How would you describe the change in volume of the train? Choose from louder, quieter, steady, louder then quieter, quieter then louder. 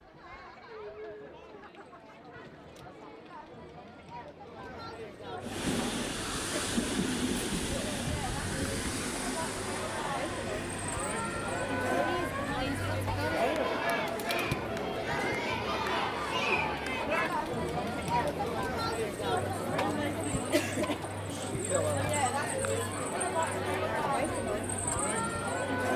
quieter.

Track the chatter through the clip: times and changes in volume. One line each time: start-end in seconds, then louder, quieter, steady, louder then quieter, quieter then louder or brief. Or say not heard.
0.0-25.9 louder.